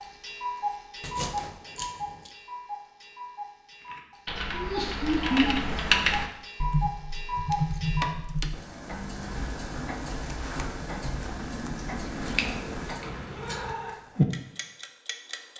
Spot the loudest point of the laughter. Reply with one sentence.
The loudest moment of the laughter is at 5 seconds.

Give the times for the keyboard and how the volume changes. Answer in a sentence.
The keyboard can be heard from 3.9 to 13.9 s, getting quieter.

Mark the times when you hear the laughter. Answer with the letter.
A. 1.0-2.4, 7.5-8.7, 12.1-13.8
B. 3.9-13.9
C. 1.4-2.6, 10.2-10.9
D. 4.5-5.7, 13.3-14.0
D.